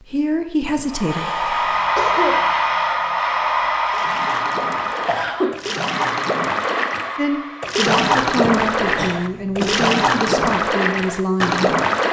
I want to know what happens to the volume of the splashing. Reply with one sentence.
The volume of the splashing goes up.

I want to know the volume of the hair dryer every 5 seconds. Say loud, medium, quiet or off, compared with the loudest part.
loud, medium, off.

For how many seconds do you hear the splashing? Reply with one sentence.
The splashing can be heard for 8 seconds in total.